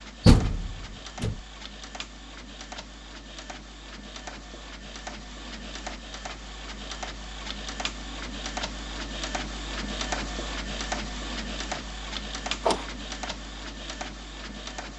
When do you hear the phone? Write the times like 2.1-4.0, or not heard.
not heard.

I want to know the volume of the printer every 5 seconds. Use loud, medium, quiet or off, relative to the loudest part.
medium, loud, loud.